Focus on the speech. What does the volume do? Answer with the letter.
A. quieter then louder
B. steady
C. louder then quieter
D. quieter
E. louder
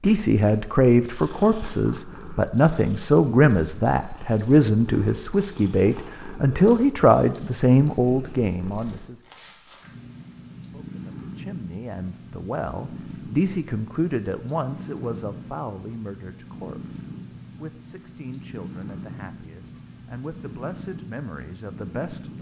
D.